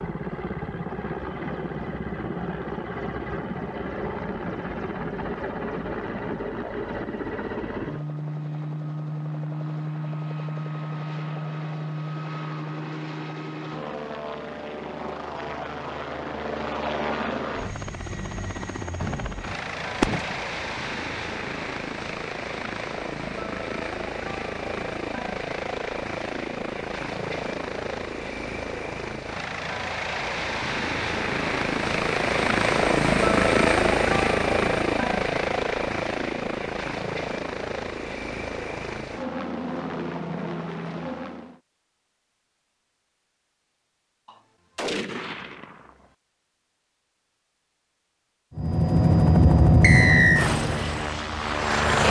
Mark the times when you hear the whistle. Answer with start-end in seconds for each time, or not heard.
49.8-50.5.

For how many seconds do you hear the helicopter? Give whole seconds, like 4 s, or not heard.
45 s.